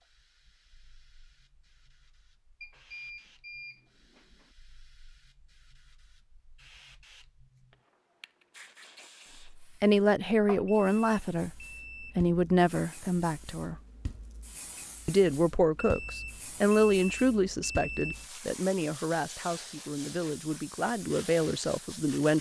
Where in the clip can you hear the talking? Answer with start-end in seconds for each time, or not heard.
9.6-13.8, 15.1-22.3.